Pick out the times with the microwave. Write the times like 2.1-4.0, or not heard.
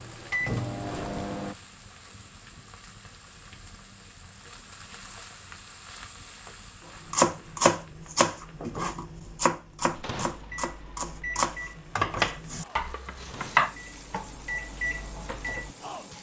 0.0-1.6, 9.8-16.1.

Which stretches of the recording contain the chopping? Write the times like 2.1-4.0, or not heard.
7.1-13.7.